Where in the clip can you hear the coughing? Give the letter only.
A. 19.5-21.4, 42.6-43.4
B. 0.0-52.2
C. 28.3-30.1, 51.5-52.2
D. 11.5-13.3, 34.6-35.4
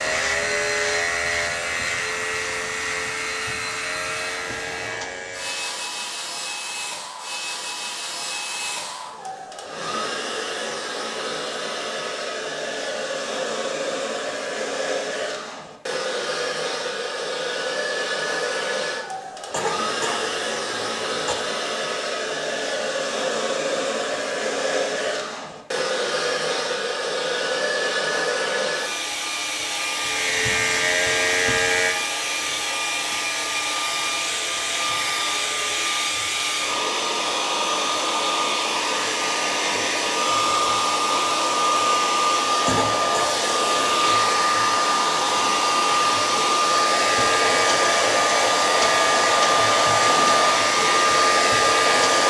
A.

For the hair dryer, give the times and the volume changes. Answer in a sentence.
You can hear the hair dryer from 0.0 to 52.2 s, getting louder.